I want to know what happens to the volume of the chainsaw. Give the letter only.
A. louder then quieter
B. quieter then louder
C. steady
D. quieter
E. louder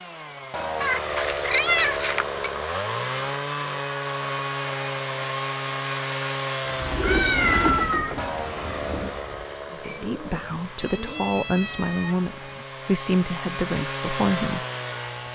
B.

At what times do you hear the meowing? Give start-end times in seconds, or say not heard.
0.8-2.3, 7.0-8.2, 10.8-12.7.